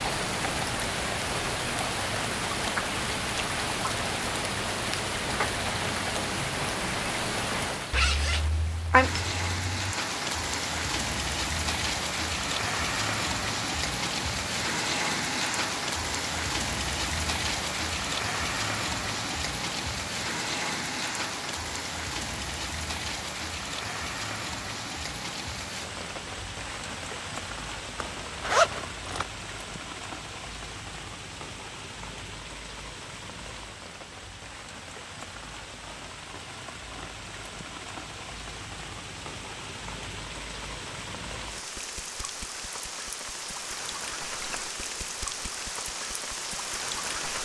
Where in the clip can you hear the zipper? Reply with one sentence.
You can hear the zipper from 7.9 to 9.9 s and from 28.0 to 29.2 s.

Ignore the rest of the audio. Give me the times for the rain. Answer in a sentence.
You can hear the rain from 0.0 to 47.3 s.